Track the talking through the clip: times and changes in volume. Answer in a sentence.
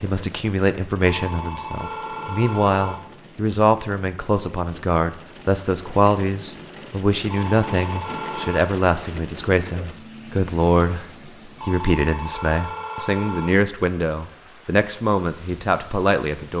You can hear the talking from 0.0 to 16.5 s, at a steady volume.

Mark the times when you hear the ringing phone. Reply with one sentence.
You can hear the ringing phone from 1.0 to 3.0 s, from 7.2 to 8.7 s and from 11.6 to 13.5 s.